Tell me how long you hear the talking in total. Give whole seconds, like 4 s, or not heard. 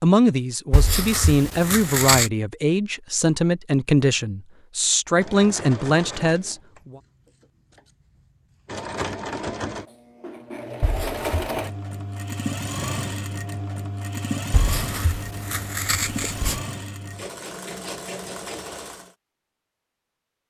7 s.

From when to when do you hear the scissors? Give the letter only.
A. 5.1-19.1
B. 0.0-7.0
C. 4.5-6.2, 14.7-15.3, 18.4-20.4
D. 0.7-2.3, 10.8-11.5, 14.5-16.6
D.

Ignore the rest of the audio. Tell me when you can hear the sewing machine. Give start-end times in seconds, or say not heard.
5.1-19.1.